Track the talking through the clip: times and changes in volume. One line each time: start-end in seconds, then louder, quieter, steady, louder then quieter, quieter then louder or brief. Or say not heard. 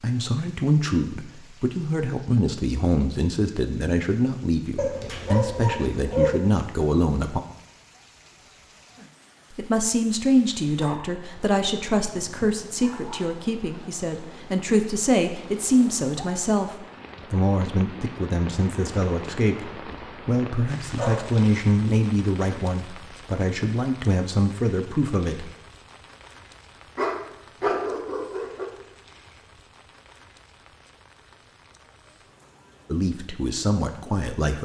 0.0-7.4 steady
9.5-25.5 steady
32.9-34.6 brief.